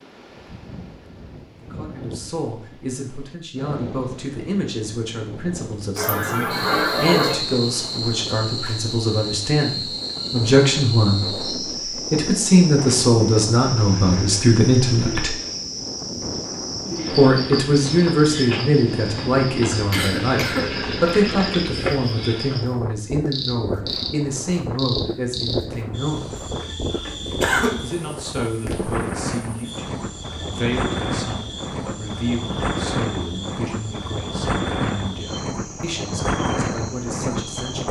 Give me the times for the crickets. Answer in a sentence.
You can hear the crickets from 6.5 to 37.8 s.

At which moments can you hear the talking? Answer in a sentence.
You can hear the talking from 1.6 to 15.3 s, from 17.1 to 26.4 s and from 27.8 to 37.8 s.